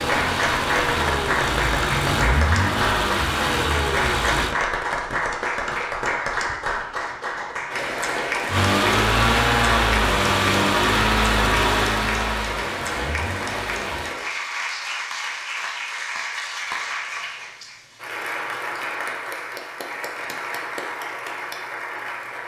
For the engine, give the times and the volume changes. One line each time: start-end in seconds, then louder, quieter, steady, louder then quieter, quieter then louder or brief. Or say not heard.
0.0-4.5 steady
8.5-14.2 quieter.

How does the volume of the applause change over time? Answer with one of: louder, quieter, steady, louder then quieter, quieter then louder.
quieter.